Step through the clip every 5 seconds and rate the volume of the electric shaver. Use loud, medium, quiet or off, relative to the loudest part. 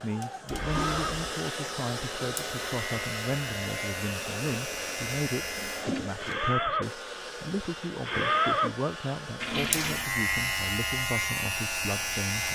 medium, loud, loud.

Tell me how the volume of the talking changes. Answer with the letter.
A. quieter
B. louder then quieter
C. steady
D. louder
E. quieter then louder
C.